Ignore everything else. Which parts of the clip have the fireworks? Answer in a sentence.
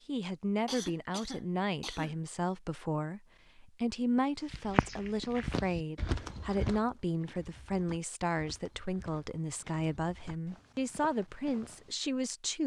The fireworks can't be heard in this clip.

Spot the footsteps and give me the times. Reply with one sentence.
The footsteps can be heard from 4.5 to 11.9 s.